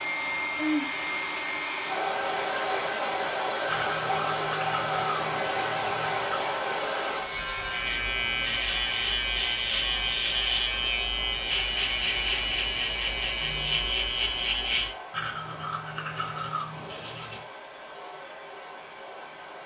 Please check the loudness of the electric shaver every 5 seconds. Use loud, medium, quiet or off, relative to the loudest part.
off, loud, loud, off.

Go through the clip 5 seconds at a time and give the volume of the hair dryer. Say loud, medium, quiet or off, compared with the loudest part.
loud, loud, quiet, quiet.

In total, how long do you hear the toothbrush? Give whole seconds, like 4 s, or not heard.
5 s.